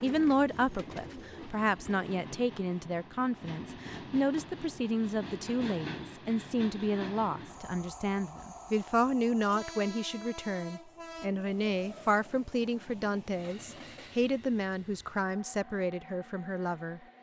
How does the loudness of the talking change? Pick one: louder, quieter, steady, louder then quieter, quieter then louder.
steady.